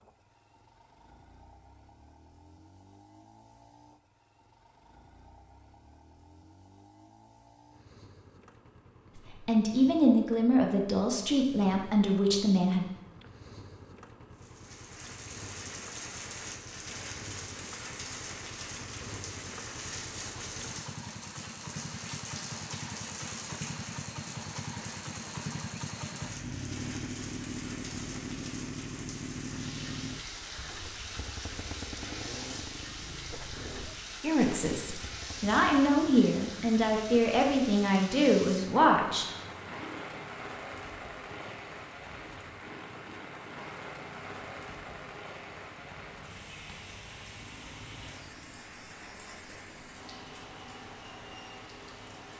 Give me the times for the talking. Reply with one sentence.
The talking can be heard from 9.2 to 12.8 s and from 34.2 to 39.2 s.